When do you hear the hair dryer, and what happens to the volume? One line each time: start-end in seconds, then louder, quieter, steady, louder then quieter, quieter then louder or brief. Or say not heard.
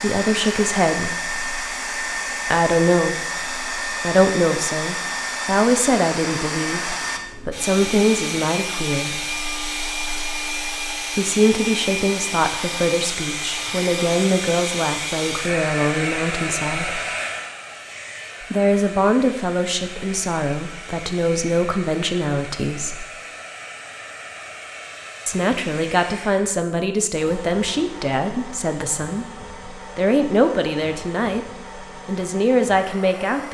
0.0-33.4 quieter.